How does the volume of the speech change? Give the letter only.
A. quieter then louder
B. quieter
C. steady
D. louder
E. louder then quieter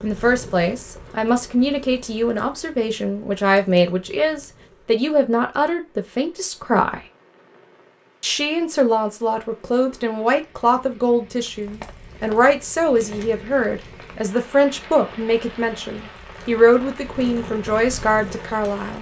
C.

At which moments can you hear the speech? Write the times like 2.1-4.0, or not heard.
0.0-7.0, 8.2-18.9.